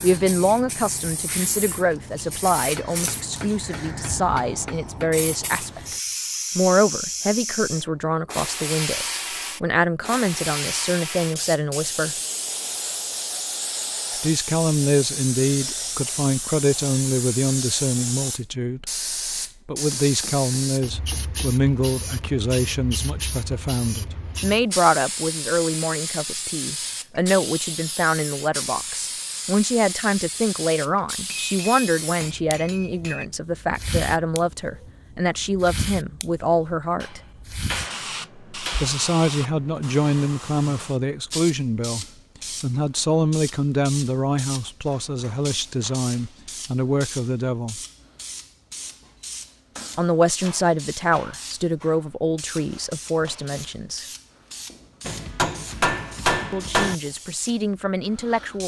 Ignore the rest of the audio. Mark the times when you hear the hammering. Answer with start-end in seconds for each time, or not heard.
2.8-5.2, 19.9-21.6, 31.2-33.2, 37.0-39.0, 55.0-57.0.